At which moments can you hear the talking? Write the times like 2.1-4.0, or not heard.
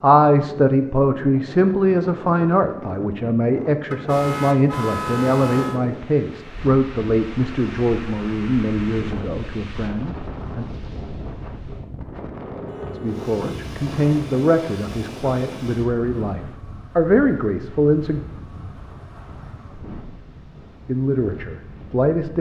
0.0-10.7, 12.9-18.2, 20.9-22.3.